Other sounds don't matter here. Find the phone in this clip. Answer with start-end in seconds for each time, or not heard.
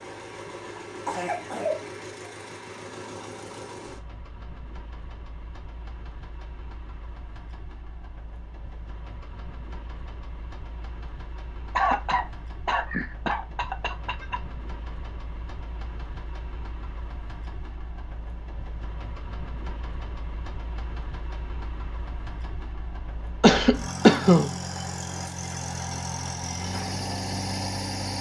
not heard.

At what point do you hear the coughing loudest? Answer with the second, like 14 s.
24 s.